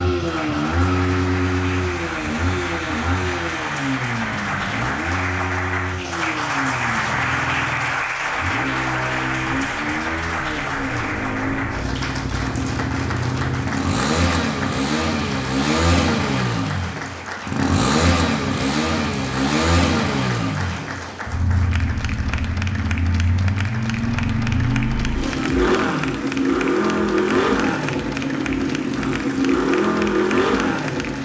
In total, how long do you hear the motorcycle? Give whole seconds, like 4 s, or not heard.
31 s.